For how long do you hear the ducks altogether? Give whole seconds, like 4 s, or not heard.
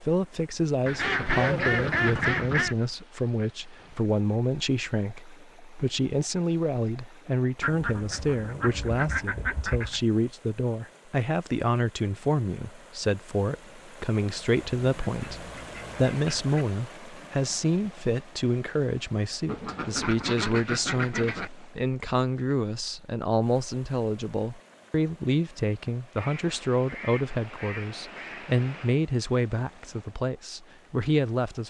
11 s.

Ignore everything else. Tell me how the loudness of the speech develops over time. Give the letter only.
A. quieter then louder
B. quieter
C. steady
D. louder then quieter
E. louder
C.